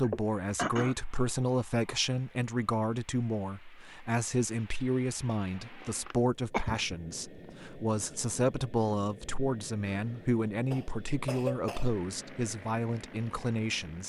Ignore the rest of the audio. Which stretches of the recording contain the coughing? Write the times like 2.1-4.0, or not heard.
0.0-0.9, 6.0-7.5, 10.7-11.9.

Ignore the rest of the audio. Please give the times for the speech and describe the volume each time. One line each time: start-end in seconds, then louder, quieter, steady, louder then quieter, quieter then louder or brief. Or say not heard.
0.0-14.0 steady.